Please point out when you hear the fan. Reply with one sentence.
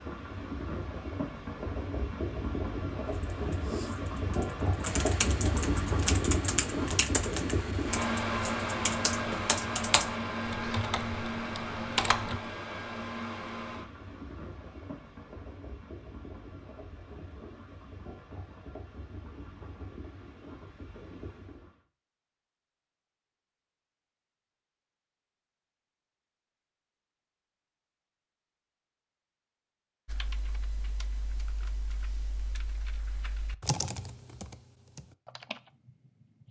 You can hear the fan from 0.0 to 21.8 s.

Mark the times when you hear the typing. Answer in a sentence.
You can hear the typing from 3.0 to 12.4 s and from 30.1 to 36.4 s.